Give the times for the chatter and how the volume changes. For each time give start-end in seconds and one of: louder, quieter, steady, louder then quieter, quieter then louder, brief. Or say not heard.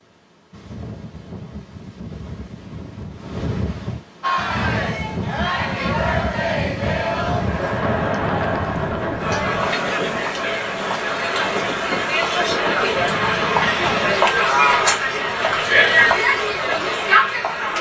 4.2-17.7 louder.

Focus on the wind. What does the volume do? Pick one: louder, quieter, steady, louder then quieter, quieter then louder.
louder.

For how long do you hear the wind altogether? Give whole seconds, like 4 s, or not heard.
14 s.